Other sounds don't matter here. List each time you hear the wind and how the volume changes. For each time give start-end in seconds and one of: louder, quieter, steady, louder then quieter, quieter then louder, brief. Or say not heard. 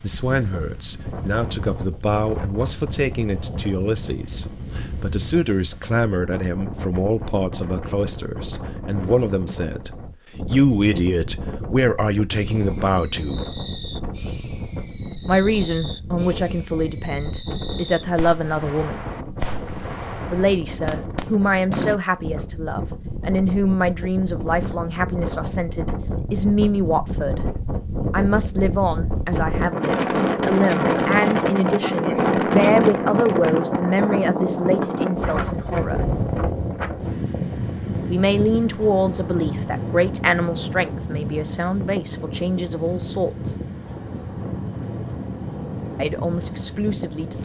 0.0-47.4 louder then quieter.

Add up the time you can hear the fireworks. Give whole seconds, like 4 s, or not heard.
10 s.